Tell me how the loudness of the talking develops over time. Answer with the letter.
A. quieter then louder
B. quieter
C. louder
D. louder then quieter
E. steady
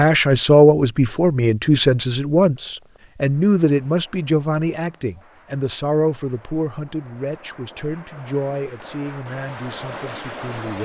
B.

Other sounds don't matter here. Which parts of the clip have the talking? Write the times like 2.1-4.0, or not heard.
0.0-10.8.